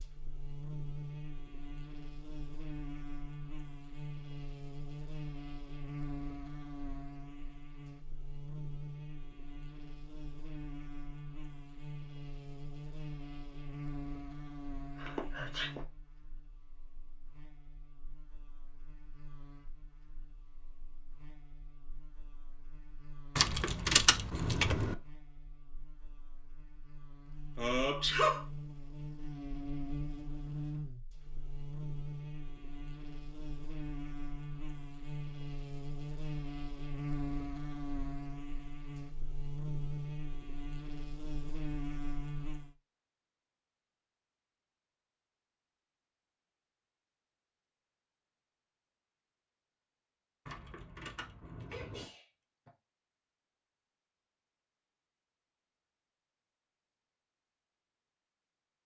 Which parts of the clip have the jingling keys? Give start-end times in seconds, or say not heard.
23.4-24.9, 50.5-52.0.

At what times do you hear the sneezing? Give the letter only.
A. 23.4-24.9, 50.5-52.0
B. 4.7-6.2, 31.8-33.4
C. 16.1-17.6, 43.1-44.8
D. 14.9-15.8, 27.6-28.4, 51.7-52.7
D.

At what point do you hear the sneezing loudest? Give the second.
28 s.